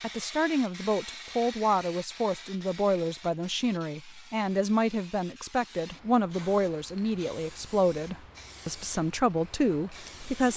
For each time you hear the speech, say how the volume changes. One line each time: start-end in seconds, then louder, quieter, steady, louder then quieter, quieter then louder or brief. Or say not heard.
0.0-10.5 steady.